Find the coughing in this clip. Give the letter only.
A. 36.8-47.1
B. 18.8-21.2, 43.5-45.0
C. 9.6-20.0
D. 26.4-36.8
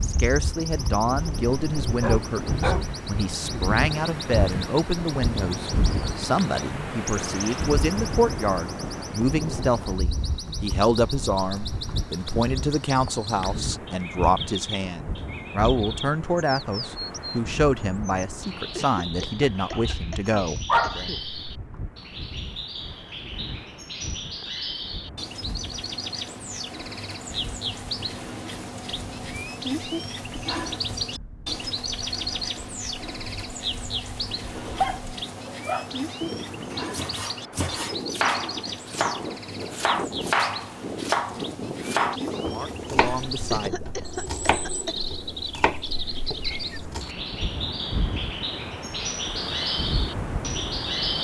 B.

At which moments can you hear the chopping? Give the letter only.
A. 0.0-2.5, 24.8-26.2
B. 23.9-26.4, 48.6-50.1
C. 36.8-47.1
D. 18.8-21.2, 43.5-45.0
C.